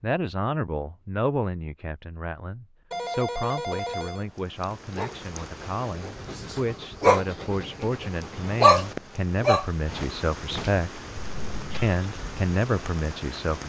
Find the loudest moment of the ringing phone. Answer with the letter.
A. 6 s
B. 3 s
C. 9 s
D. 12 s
B.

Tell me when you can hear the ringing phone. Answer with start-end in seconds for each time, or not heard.
2.9-4.8, 11.2-11.9.